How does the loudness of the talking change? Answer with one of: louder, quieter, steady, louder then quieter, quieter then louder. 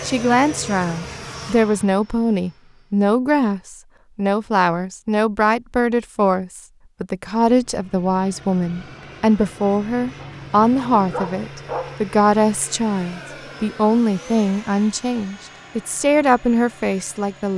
steady.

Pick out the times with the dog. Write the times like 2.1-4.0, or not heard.
10.2-12.1.